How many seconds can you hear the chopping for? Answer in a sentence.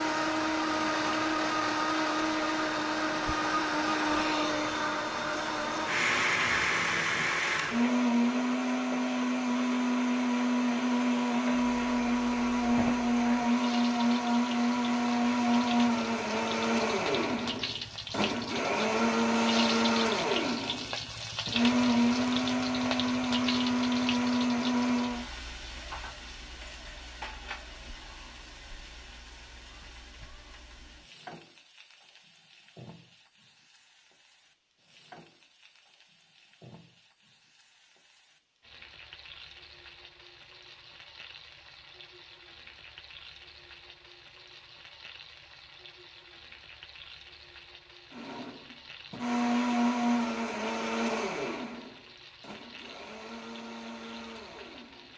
The chopping can't be heard in this clip.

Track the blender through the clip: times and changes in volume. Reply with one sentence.
The blender can be heard from 0.0 to 25.2 s, at a steady volume; and from 48.1 to 55.1 s, getting quieter.